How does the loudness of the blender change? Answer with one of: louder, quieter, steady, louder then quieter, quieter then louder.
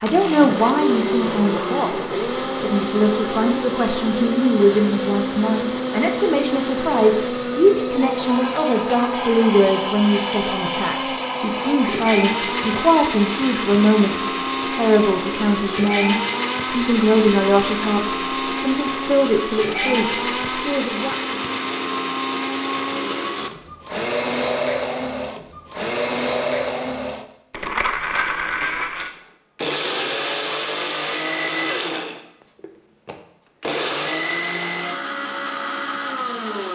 steady.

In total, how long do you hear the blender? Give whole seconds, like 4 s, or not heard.
37 s.